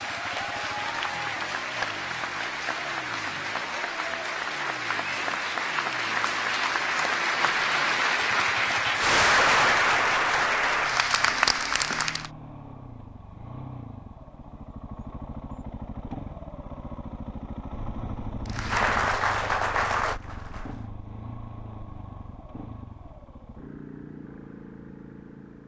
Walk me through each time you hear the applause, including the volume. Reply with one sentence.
The applause can be heard from 0.0 to 12.3 s, getting louder; and briefly from 18.4 to 20.9 s.